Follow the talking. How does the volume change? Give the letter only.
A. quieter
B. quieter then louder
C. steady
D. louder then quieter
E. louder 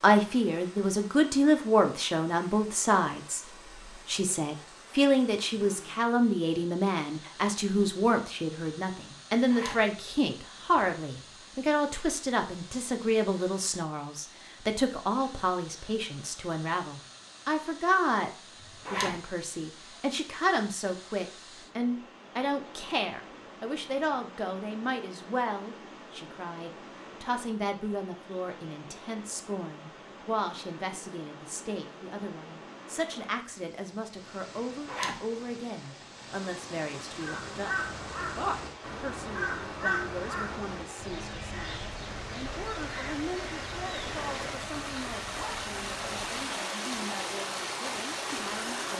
A.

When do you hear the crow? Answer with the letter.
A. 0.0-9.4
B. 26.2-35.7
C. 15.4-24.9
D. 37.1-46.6
D.